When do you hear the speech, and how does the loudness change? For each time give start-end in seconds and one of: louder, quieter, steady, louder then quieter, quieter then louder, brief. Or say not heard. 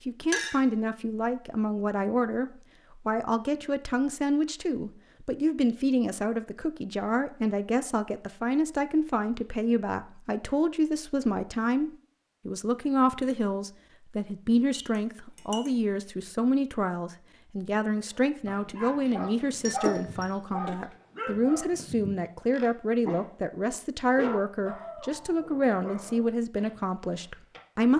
0.1-27.9 steady.